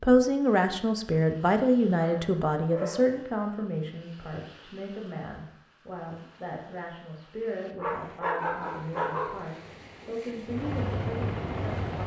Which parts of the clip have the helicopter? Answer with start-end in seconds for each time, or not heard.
10.4-12.0.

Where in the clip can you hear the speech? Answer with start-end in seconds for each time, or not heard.
0.0-12.0.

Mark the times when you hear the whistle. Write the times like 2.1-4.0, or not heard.
not heard.